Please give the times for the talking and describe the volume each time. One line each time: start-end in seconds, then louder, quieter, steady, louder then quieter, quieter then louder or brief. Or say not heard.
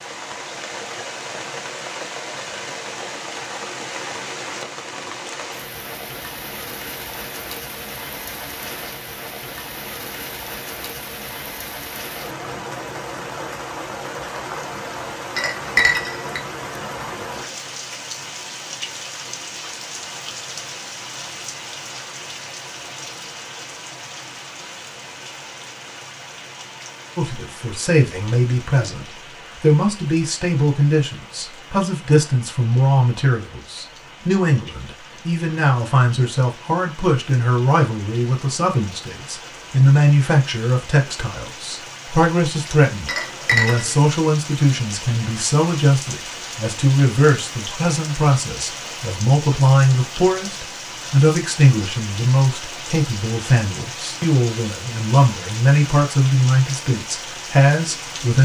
27.1-58.4 steady.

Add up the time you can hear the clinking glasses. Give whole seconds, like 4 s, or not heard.
2 s.